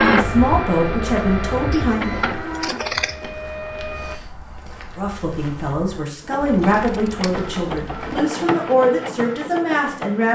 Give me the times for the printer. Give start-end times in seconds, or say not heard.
0.0-4.2, 6.2-10.3.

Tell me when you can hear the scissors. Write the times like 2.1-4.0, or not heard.
1.7-3.3, 6.6-7.8.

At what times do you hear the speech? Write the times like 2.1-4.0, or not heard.
0.0-2.1, 5.0-10.3.